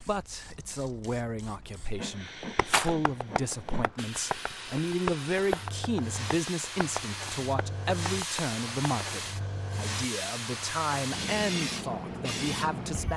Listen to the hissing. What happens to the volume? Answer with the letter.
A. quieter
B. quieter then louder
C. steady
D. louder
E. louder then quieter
D.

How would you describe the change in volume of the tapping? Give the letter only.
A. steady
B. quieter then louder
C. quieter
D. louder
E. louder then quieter
E.